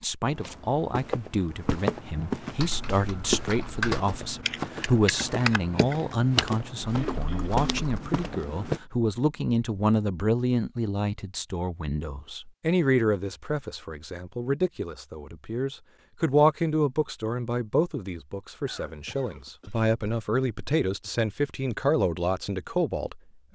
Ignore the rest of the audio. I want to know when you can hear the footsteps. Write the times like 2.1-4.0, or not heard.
0.2-8.8.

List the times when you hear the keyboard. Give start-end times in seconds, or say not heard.
2.5-8.0.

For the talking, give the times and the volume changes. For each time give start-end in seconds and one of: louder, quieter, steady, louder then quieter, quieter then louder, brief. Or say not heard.
0.0-23.5 steady.